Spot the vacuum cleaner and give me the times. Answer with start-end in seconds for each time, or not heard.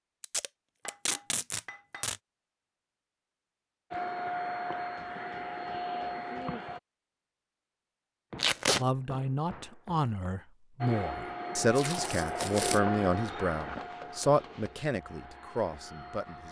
3.9-6.8, 10.8-16.4.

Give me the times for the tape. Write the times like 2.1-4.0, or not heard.
0.2-2.1, 8.3-8.8, 11.8-12.8.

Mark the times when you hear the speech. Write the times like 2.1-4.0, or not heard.
8.8-16.4.